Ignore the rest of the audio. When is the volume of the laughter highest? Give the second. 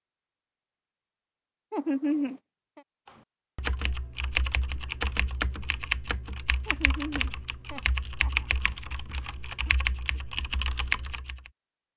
2 s.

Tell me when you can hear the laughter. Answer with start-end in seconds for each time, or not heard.
1.7-2.8, 6.7-8.4.